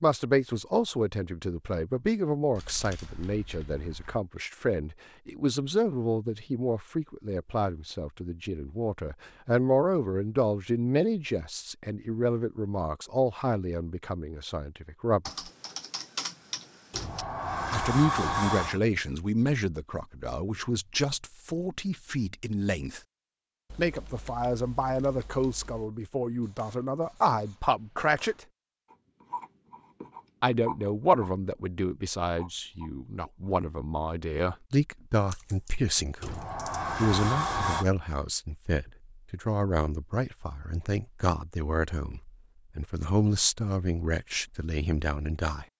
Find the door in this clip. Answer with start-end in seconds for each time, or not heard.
16.9-18.8, 36.2-37.9.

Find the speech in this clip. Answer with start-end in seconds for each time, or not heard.
0.0-15.3, 17.7-23.0, 23.8-28.4, 30.4-45.6.